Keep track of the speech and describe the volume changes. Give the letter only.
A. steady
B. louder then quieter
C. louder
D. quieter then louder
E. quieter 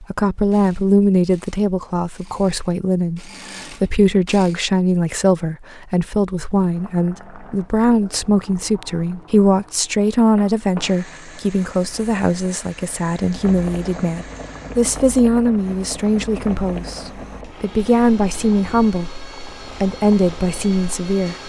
A.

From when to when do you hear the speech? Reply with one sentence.
You can hear the speech from 0.0 to 21.4 s.